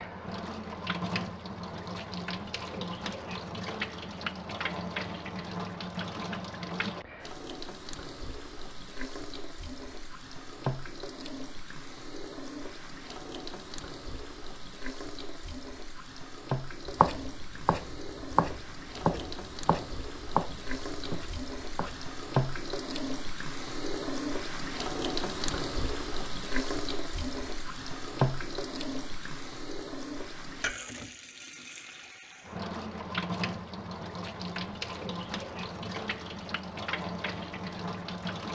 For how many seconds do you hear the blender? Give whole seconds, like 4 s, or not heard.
not heard.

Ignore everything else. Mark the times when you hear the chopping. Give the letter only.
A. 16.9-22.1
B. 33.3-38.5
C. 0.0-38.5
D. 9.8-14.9
A.